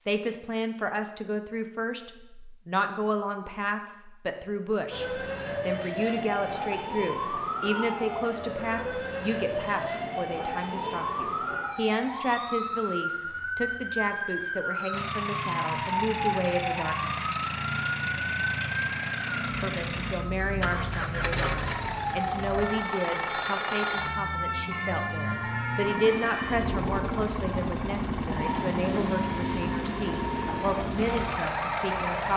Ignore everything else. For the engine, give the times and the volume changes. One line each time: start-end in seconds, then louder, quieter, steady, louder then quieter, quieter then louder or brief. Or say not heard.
14.9-32.3 steady.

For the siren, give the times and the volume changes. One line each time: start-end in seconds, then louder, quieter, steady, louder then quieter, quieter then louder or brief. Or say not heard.
4.9-32.3 steady.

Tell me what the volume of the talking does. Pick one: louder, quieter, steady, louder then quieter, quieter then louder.
steady.